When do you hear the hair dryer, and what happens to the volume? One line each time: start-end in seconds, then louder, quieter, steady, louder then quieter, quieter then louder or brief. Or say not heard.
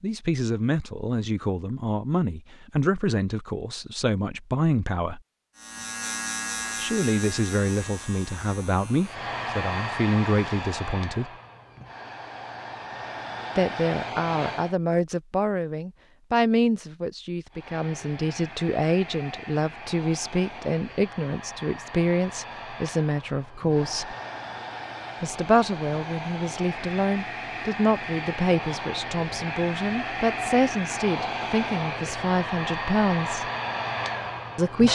9.0-14.8 quieter then louder
17.5-34.9 louder.